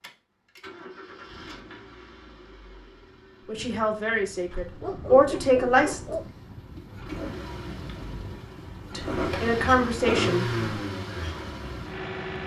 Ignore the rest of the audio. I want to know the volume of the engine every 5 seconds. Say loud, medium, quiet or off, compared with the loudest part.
quiet, medium, loud.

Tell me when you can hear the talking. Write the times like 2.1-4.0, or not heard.
3.5-6.0, 8.9-10.4.